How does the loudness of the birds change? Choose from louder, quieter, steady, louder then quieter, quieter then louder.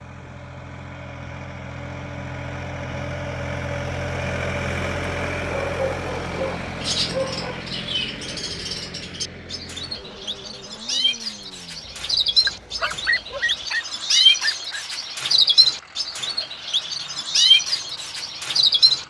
louder.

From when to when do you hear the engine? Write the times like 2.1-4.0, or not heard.
0.0-19.0.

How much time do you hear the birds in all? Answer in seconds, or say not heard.
12 s.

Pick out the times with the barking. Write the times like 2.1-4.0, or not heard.
5.5-7.7, 12.4-14.8.